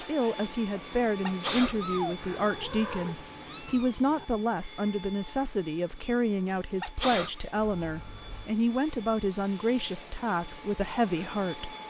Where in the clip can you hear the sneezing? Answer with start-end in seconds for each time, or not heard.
1.1-2.5, 6.6-7.4.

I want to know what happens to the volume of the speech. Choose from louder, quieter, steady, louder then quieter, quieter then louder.
steady.